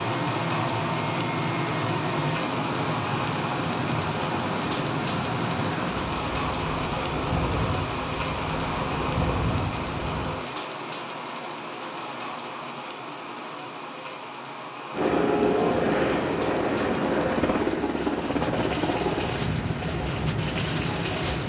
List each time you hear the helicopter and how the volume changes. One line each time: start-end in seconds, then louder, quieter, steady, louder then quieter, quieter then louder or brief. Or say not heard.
0.0-10.3 steady
14.9-21.4 quieter.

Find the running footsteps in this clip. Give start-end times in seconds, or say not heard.
not heard.